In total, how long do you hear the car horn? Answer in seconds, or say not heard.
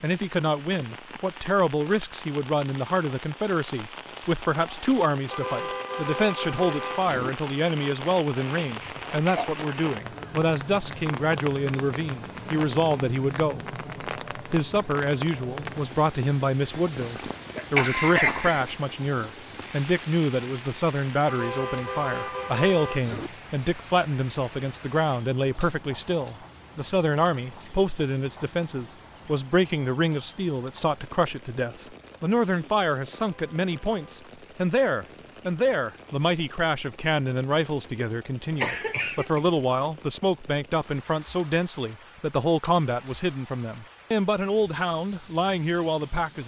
5 s.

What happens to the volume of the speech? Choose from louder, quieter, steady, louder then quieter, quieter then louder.
steady.